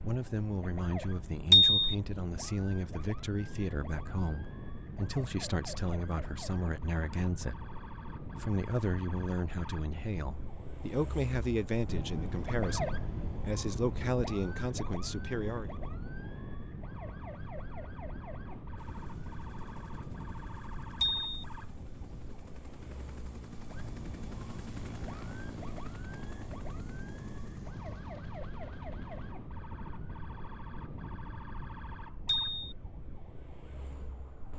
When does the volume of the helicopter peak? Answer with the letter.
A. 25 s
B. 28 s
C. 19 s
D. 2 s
A.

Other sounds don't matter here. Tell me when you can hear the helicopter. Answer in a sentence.
You can hear the helicopter from 18.8 to 29.4 s.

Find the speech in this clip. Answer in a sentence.
You can hear the speech from 0.1 to 7.8 s and from 8.4 to 15.8 s.